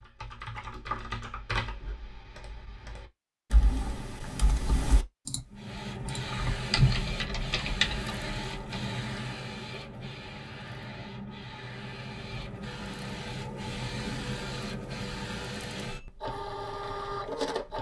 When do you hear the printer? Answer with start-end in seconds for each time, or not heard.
5.5-17.7.